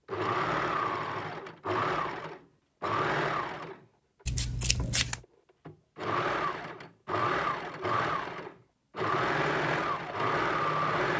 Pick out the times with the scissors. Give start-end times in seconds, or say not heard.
4.2-5.2.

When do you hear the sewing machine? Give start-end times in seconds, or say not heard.
0.1-11.1.